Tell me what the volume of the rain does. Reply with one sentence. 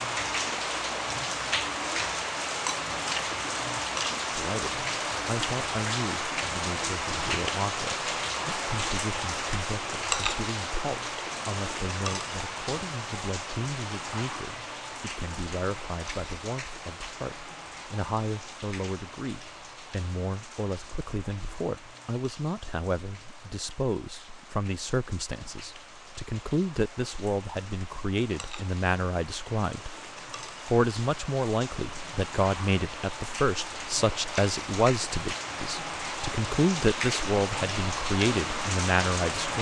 The volume of the rain goes down, then up.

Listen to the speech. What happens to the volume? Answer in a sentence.
The loudness of the speech goes up.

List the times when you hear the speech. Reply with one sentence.
The speech can be heard from 4.3 to 29.9 s and from 30.6 to 39.5 s.